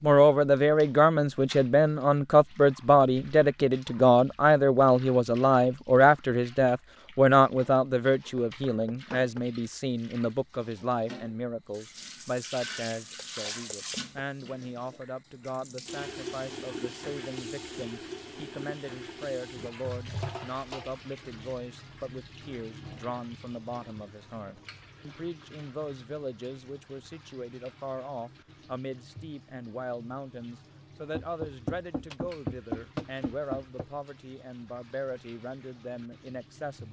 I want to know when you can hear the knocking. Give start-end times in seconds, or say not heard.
8.3-9.5, 13.2-14.1, 31.1-33.9.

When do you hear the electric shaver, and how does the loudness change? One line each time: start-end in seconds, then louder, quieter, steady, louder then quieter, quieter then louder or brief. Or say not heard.
not heard.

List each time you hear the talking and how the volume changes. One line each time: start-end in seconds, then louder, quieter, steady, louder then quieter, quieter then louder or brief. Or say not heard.
0.0-36.8 quieter.